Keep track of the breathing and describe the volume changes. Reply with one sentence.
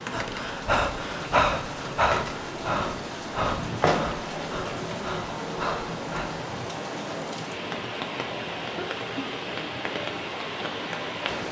The loudness of the breathing goes down.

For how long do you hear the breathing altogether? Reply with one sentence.
You can hear the breathing for 6 seconds altogether.